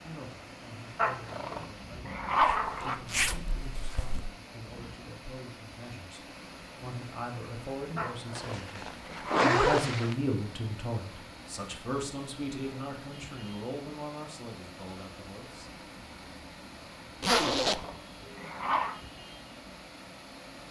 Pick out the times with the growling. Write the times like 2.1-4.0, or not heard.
0.9-3.0, 8.0-9.5, 17.3-18.9.